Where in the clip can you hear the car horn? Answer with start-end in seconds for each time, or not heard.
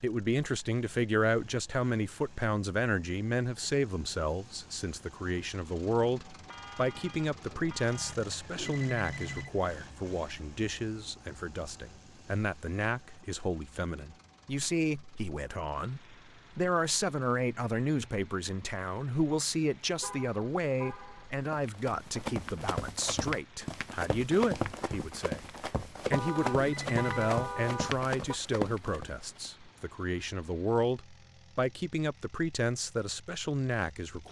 6.5-8.2, 20.0-21.3, 26.1-28.4.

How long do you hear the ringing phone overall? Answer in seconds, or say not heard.
2 s.